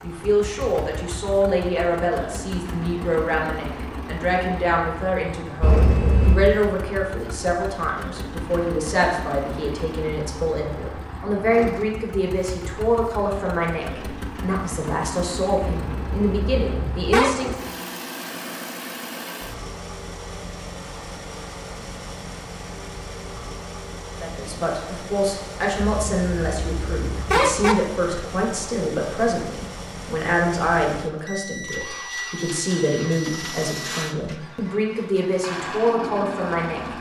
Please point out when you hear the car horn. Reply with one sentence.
You can hear the car horn from 5.6 to 6.5 s, from 15.8 to 17.4 s and from 25.9 to 27.8 s.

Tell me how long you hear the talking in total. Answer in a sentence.
The talking can be heard for 30 seconds in total.